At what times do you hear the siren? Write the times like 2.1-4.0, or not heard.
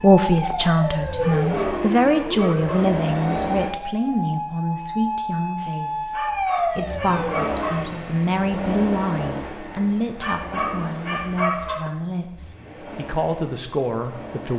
0.0-7.8.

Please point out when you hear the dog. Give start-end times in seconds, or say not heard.
1.2-2.9, 6.1-8.0, 10.2-11.8.